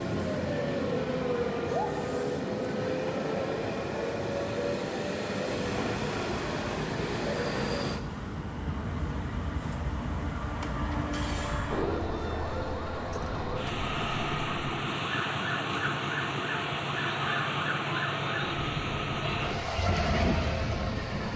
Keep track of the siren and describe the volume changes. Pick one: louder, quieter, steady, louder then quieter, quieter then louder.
steady.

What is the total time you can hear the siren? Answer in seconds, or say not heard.
21 s.